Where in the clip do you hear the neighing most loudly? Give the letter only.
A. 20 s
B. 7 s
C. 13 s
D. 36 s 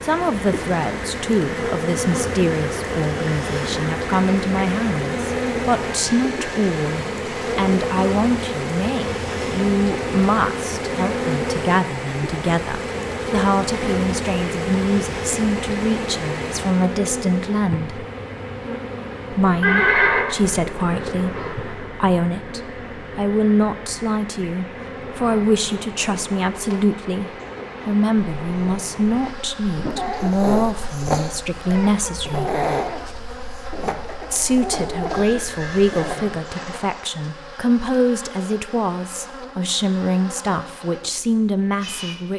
A.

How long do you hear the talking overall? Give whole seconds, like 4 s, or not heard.
39 s.